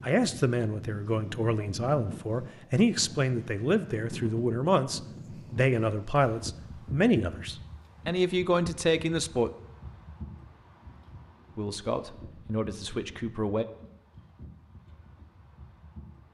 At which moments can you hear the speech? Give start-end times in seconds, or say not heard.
0.0-9.5, 11.6-13.7.